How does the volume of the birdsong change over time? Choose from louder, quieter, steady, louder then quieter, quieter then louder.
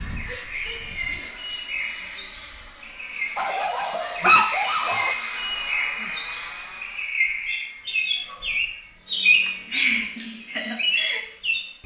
louder.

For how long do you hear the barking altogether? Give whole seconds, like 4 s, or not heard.
2 s.